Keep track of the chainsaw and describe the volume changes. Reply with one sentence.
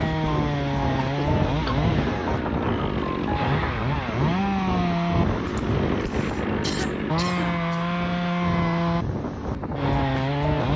The loudness of the chainsaw stays about the same.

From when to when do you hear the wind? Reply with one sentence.
You can hear the wind from 0.0 to 10.7 s.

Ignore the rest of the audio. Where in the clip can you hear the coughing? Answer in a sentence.
The coughing can be heard from 0.9 to 1.8 s and from 5.5 to 7.8 s.